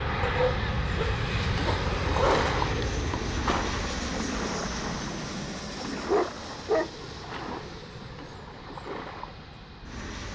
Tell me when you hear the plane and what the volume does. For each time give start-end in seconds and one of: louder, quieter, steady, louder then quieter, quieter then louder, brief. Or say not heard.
0.0-10.3 quieter.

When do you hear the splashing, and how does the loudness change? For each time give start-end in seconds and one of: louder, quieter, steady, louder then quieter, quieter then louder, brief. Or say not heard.
1.4-9.4 quieter.